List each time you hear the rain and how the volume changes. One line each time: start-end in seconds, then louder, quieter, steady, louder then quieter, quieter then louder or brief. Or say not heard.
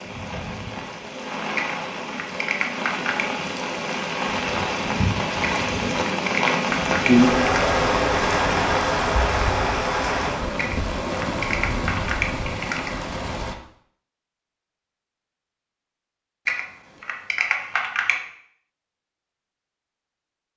0.0-13.6 louder then quieter.